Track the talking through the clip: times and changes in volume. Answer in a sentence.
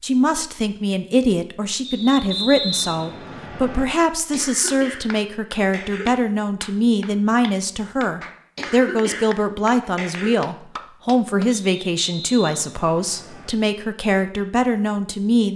You can hear the talking from 0.0 to 15.5 s, at a steady volume.